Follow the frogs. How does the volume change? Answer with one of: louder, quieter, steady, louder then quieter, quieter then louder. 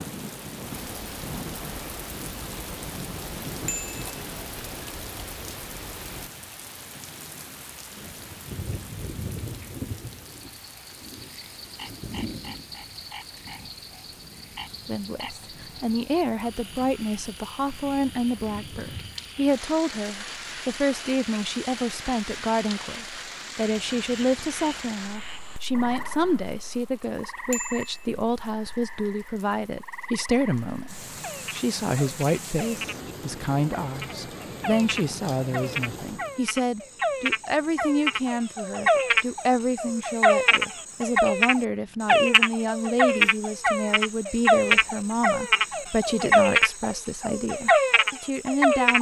louder.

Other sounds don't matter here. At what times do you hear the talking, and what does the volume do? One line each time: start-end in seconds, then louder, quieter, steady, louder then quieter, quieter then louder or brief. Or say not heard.
14.8-48.9 steady.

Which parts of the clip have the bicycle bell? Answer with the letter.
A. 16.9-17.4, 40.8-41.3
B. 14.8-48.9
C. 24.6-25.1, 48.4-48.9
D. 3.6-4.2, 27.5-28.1
D.